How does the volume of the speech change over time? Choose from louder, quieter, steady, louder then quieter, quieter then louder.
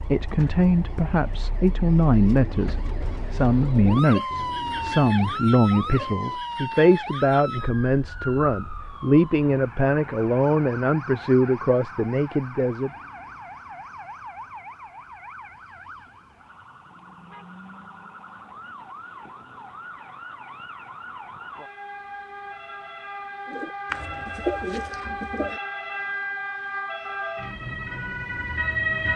steady.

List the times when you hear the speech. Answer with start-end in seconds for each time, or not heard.
0.0-12.9.